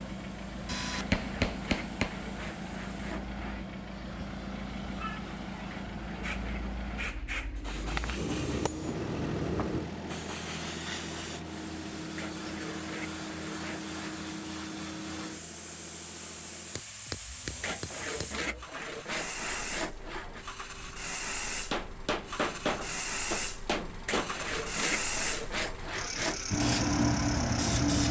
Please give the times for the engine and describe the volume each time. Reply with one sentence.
The engine can be heard from 0.0 to 28.0 s, getting quieter then louder.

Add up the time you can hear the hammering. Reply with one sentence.
The hammering can be heard for 8 seconds in total.